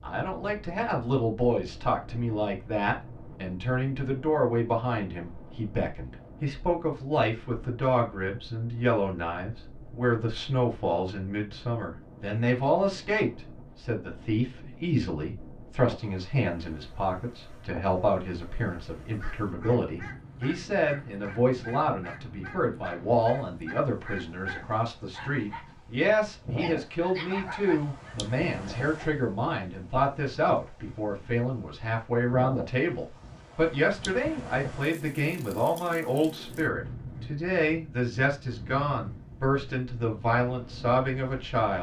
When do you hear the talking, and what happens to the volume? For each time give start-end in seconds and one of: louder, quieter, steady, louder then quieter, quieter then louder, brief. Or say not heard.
0.0-41.7 steady.